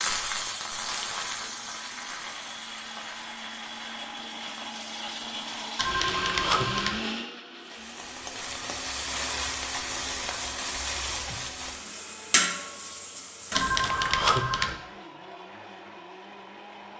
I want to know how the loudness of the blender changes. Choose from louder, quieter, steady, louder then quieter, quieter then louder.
louder then quieter.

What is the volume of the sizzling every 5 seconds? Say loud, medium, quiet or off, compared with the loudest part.
loud, loud, loud, off.